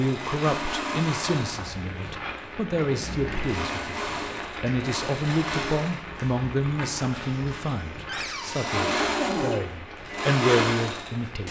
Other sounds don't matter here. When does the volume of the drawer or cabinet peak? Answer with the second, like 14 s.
9 s.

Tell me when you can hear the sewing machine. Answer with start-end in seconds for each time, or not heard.
0.0-11.4.